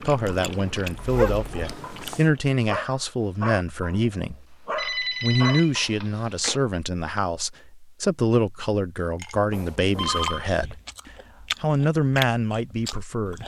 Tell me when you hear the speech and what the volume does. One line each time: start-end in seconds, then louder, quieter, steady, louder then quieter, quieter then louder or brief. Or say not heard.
0.0-10.8 steady
11.4-13.4 brief.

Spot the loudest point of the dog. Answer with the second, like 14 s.
1 s.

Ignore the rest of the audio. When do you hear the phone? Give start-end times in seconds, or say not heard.
1.6-2.2, 4.8-6.6, 9.5-10.4.